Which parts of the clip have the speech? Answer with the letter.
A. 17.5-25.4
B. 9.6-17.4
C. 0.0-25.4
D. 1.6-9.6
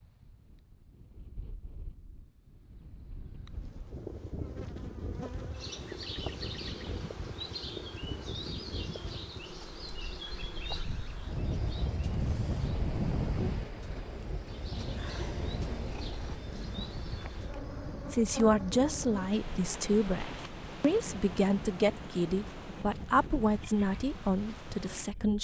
A.